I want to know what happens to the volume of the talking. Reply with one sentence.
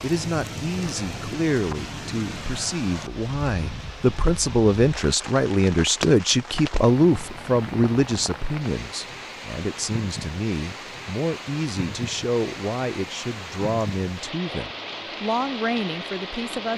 The volume of the talking goes up, then down.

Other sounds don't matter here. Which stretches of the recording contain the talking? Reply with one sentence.
You can hear the talking from 0.0 to 16.7 s.